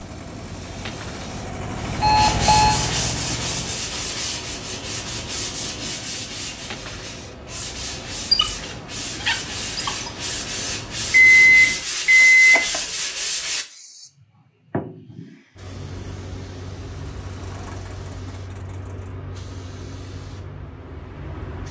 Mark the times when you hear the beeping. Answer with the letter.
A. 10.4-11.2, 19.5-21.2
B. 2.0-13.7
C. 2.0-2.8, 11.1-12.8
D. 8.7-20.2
C.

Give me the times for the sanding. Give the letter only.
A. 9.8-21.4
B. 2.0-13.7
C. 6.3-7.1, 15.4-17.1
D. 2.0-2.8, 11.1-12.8
B.